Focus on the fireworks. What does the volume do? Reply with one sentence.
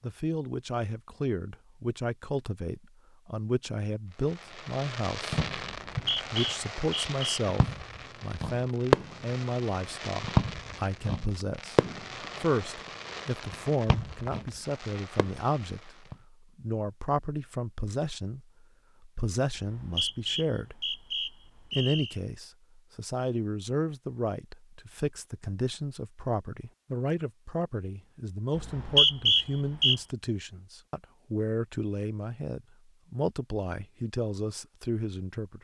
The loudness of the fireworks goes up, then down.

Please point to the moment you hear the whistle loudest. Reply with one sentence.
The volume of the whistle peaks at 29 seconds.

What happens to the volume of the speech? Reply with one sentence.
The loudness of the speech stays about the same.